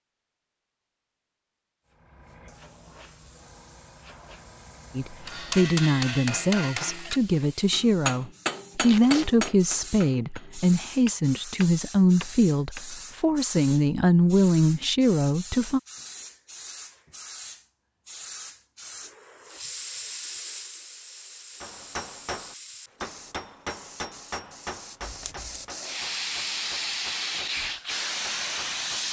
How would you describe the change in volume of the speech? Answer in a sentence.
The loudness of the speech stays about the same.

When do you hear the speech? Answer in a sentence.
The speech can be heard from 5.0 to 15.8 s.